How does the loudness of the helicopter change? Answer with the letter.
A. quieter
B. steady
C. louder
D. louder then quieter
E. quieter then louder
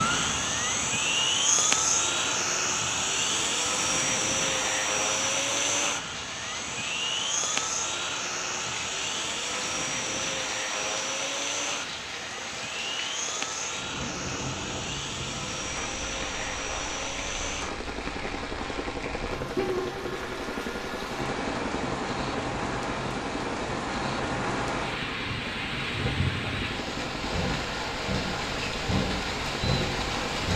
A.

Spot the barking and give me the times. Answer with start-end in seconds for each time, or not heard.
not heard.